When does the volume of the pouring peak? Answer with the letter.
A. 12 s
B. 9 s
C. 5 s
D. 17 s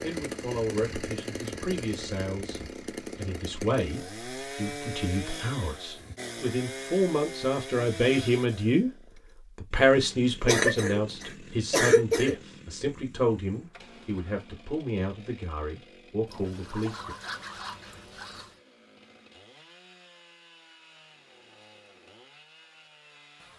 D.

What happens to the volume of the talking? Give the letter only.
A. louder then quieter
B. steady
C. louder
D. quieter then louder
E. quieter
A.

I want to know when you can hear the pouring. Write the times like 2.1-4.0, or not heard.
16.2-18.6.